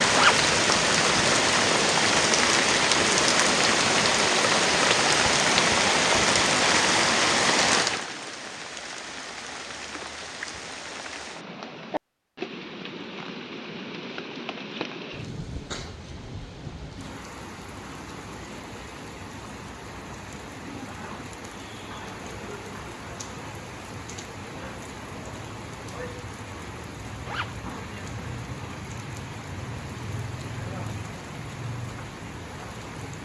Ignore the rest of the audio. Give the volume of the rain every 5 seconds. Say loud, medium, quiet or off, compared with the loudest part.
loud, loud, quiet, quiet, quiet, quiet, quiet.